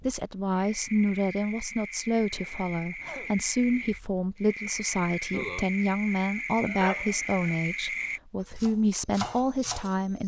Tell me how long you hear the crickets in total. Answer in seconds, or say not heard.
8 s.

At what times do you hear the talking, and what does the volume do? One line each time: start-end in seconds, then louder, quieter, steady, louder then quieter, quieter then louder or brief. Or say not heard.
0.1-10.2 steady.